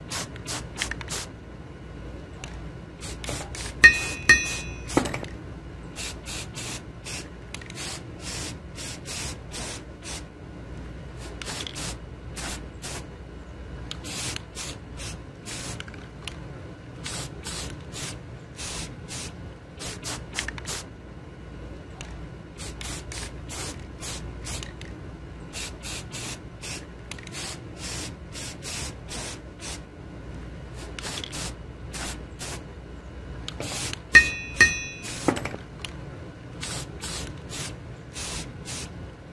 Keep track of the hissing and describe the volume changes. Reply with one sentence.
The loudness of the hissing stays about the same.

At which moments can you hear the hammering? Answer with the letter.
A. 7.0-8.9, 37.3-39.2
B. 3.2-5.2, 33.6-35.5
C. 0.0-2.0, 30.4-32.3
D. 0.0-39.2
B.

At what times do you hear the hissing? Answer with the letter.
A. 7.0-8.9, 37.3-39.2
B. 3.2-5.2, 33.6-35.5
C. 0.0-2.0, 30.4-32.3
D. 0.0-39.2
D.